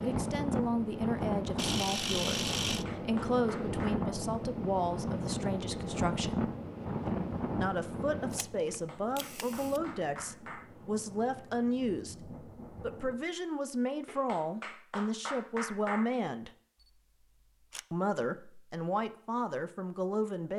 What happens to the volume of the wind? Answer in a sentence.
The volume of the wind goes down.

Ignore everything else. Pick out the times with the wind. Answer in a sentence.
The wind can be heard from 0.0 to 13.2 s.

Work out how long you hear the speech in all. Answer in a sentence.
The speech can be heard for 18 seconds in total.